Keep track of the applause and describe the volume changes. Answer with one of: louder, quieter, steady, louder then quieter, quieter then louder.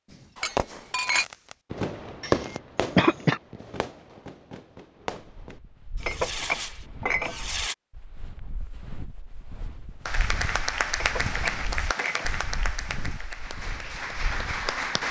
quieter then louder.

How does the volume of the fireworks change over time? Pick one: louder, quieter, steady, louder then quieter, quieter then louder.
quieter then louder.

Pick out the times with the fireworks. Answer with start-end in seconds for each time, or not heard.
0.1-7.8.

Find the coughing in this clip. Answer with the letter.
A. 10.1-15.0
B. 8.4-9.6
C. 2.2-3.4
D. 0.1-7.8
C.